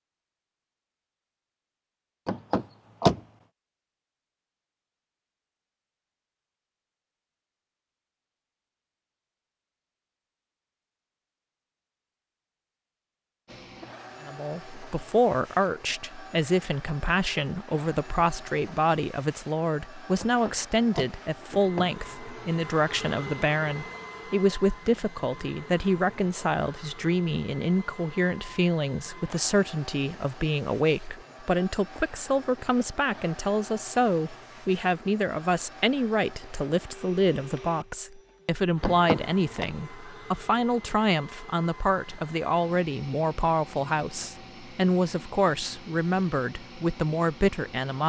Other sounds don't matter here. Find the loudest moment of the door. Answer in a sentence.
The volume of the door peaks at 3 seconds.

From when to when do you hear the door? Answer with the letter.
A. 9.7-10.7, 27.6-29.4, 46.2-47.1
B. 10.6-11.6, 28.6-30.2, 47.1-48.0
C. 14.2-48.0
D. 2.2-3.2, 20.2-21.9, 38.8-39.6
D.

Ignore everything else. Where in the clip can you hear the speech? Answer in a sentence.
The speech can be heard from 14.2 to 48.0 s.